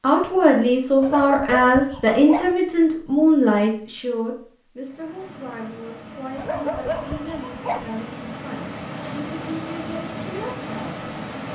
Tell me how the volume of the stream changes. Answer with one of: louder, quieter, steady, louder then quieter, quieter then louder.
louder.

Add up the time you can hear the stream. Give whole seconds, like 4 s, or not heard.
7 s.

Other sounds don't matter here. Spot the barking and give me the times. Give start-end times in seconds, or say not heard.
1.0-2.5, 6.3-7.9.